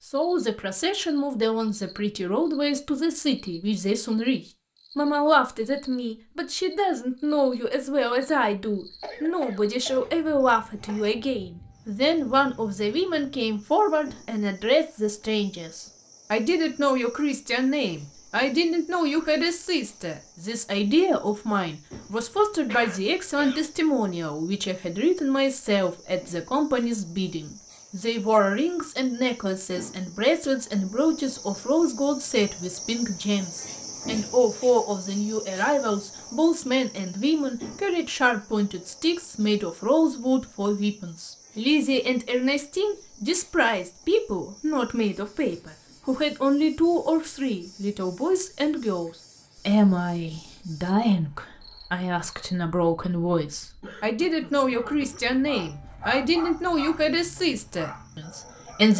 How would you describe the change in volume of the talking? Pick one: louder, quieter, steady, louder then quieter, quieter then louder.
steady.